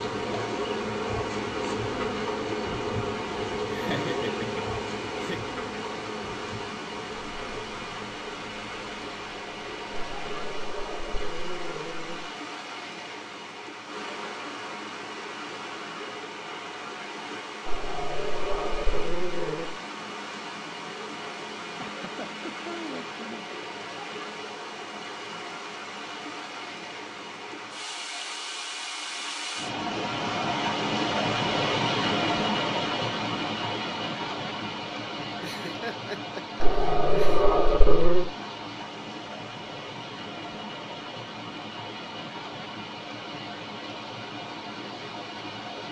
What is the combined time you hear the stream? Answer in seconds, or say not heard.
46 s.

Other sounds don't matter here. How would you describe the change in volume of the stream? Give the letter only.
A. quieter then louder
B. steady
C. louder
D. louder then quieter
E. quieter
D.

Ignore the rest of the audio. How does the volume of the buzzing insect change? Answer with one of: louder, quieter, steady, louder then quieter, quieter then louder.
quieter.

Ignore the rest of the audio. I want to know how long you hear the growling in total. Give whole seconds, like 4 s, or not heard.
6 s.